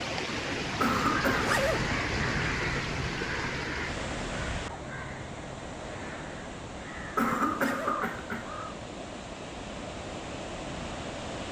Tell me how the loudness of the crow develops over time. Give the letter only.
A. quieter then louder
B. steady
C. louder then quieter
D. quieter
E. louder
A.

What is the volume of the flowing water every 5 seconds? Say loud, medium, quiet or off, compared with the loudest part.
loud, medium, loud.